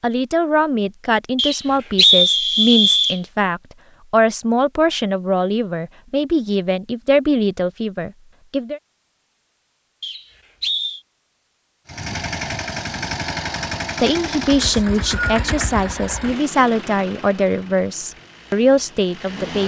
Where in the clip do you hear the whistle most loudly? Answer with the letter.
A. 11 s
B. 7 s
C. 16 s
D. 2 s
D.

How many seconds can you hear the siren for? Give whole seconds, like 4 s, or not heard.
not heard.